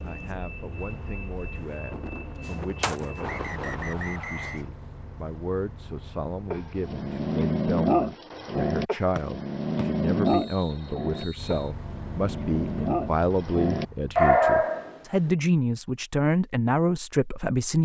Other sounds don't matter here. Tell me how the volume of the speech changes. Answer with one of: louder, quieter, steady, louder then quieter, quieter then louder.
louder.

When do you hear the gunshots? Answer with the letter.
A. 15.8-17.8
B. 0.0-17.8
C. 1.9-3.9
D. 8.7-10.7
C.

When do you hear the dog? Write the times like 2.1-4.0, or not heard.
6.5-15.3.